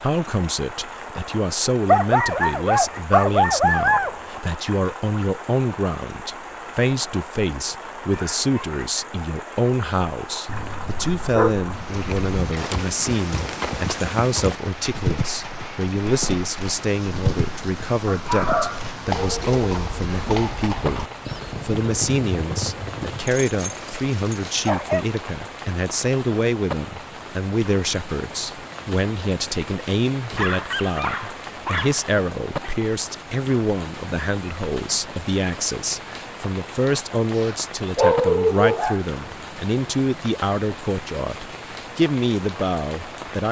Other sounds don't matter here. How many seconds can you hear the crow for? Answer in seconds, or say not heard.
not heard.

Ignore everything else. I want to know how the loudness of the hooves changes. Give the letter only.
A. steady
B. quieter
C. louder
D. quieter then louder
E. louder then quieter
A.